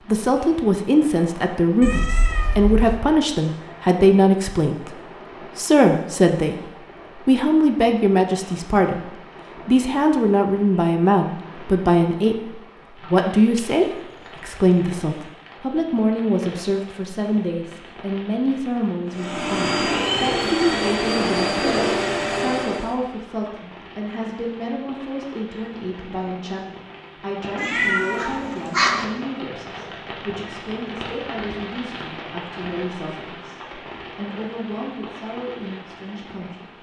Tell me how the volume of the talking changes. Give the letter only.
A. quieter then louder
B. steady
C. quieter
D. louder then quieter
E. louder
C.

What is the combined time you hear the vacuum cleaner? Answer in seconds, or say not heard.
4 s.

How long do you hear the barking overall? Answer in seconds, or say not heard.
not heard.